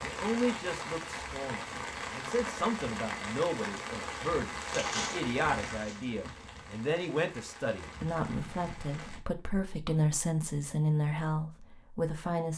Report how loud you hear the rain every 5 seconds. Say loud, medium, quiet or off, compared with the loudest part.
loud, medium, off.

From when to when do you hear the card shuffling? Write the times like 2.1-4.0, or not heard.
4.6-6.5.